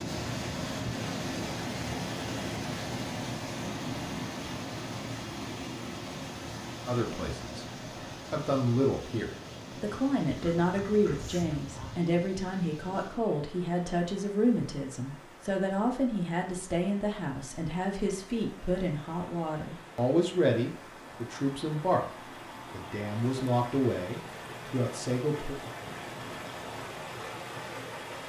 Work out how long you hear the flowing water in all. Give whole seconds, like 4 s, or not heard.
28 s.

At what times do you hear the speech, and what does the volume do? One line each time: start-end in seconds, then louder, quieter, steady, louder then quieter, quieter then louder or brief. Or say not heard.
6.8-25.6 steady.